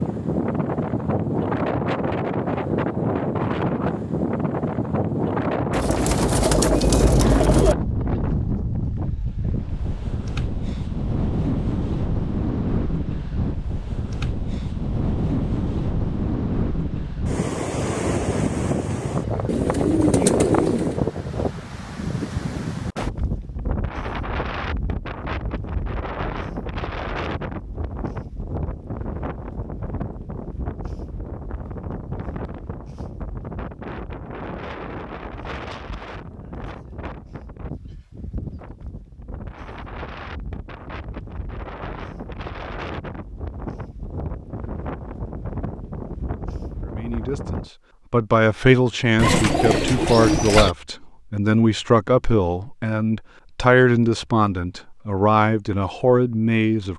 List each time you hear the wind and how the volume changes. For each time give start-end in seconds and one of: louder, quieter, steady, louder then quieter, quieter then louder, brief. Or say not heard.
0.0-47.7 quieter.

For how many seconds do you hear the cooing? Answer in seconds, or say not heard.
5 s.